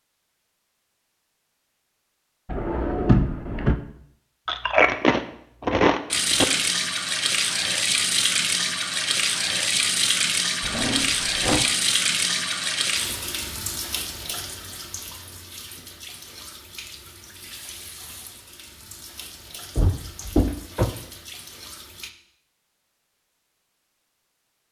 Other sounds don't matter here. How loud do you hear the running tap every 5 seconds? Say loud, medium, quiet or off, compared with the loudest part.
off, loud, loud, quiet, quiet.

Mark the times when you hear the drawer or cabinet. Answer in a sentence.
You can hear the drawer or cabinet from 2.5 to 3.8 s, from 10.6 to 11.7 s and from 19.8 to 20.9 s.